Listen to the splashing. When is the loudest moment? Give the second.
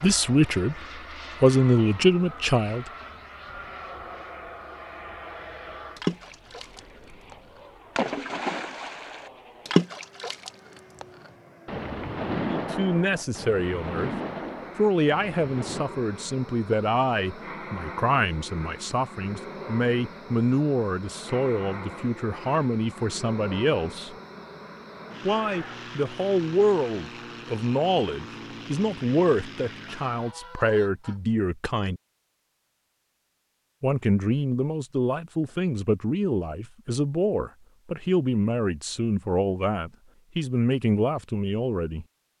10 s.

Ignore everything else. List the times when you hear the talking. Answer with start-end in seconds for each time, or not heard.
0.0-0.8, 1.4-2.9, 12.5-14.1, 14.8-24.1, 25.2-32.0, 33.8-42.0.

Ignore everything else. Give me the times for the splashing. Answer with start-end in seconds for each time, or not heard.
6.0-15.8.